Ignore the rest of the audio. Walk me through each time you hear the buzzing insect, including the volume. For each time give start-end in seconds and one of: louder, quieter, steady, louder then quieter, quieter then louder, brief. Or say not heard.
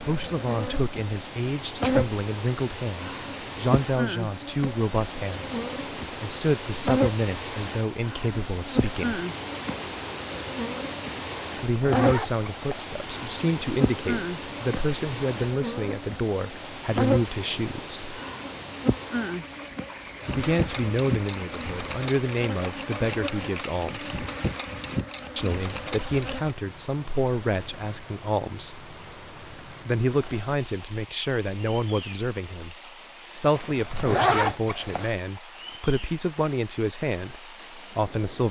0.0-26.6 steady.